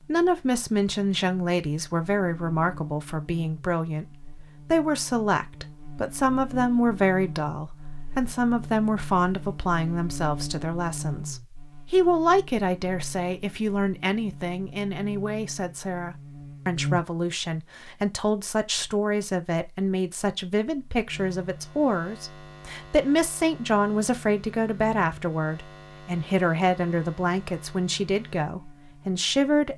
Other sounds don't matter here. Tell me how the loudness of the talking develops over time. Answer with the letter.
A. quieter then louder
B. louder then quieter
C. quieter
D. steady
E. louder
D.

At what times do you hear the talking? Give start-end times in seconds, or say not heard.
0.0-29.7.